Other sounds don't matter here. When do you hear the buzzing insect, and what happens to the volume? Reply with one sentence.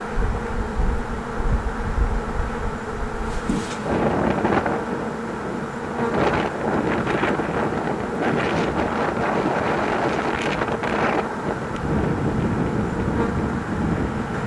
The buzzing insect can be heard from 0.0 to 14.4 s, at a steady volume.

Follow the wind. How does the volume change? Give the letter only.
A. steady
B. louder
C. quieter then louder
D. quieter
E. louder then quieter
B.